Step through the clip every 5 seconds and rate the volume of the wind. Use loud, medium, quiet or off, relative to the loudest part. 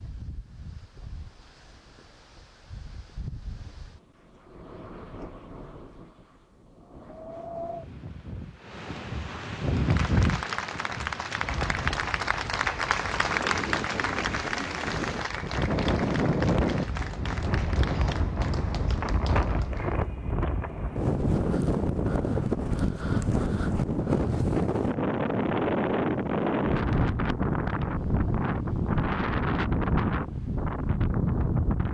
quiet, medium, medium, loud, loud, loud, loud.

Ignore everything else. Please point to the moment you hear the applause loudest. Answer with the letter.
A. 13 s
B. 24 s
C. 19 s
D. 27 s
A.